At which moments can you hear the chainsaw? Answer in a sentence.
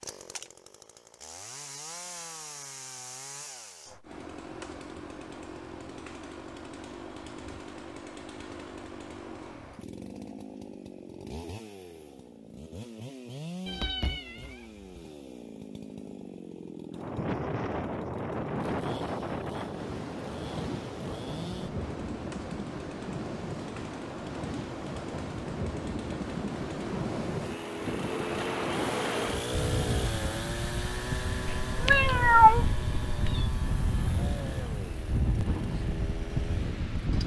The chainsaw can be heard from 0.0 to 37.2 s.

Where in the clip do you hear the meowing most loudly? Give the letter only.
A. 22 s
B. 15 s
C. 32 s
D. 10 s
C.